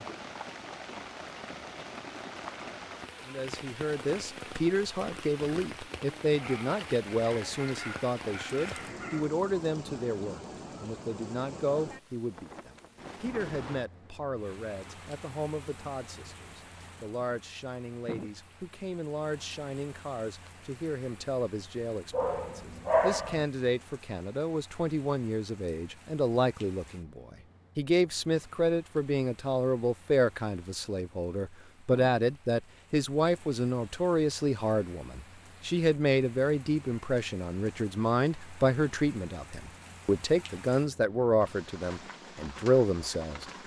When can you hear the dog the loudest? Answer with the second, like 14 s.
23 s.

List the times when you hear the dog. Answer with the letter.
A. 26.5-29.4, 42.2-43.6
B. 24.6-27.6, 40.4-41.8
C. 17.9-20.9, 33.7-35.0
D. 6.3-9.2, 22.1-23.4
D.